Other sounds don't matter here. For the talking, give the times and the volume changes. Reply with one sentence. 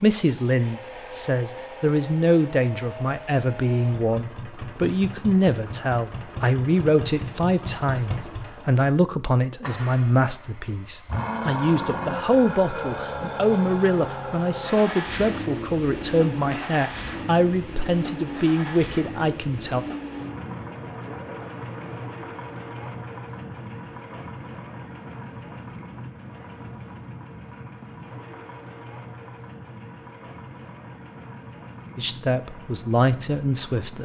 The talking can be heard from 0.0 to 19.9 s, at a steady volume; and briefly from 31.9 to 34.0 s.